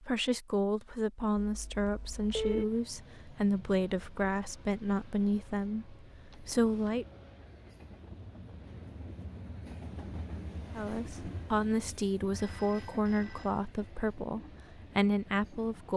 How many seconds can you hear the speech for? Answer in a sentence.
The speech can be heard for 12 seconds in total.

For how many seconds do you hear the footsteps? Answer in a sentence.
You can't hear the footsteps here.